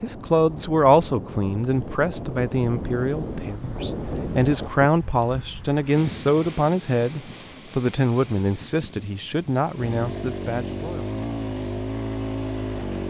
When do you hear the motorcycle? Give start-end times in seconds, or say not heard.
9.8-13.0.